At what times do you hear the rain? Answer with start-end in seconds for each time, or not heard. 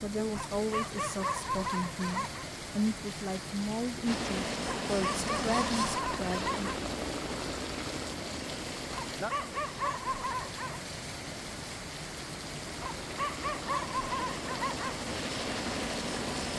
0.0-16.5.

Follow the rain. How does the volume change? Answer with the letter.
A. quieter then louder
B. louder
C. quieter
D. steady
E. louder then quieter
D.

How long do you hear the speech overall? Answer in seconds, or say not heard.
7 s.